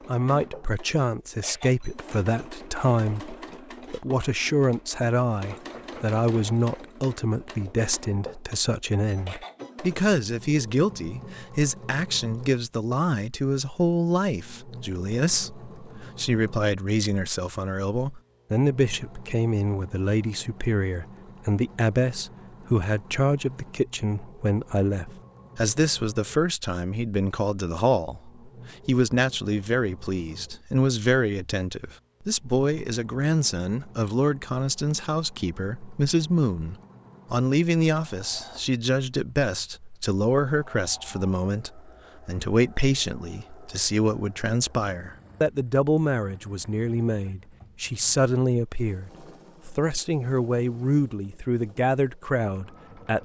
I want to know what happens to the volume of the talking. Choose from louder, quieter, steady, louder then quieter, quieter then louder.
steady.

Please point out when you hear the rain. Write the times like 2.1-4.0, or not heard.
not heard.